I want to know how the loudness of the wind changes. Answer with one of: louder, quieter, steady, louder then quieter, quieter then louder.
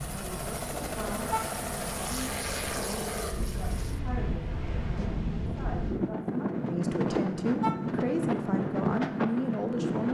louder.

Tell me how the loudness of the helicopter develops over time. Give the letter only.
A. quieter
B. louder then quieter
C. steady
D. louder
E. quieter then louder
A.